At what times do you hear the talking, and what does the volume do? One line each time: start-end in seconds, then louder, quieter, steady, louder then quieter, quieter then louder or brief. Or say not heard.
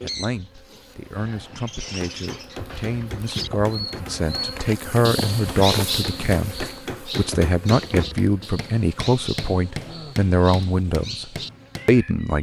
0.0-12.3 louder.